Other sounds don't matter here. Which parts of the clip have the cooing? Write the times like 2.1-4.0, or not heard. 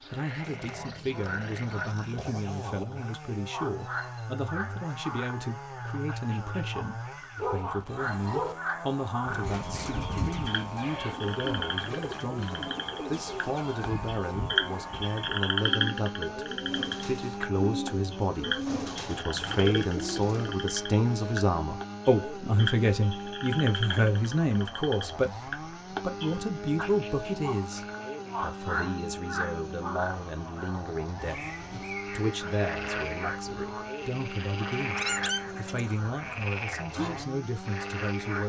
9.2-20.6.